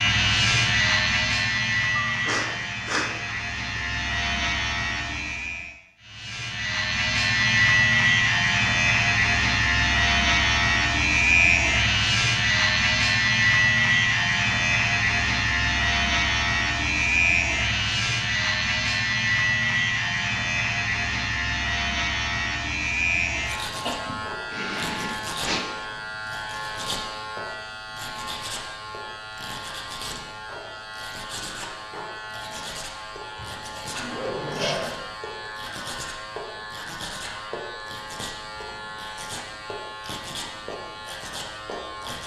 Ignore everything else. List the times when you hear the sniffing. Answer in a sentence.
The sniffing can be heard from 1.9 to 3.4 s, from 23.9 to 25.6 s and from 34.2 to 34.8 s.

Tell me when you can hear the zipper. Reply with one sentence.
You can hear the zipper from 33.4 to 35.0 s.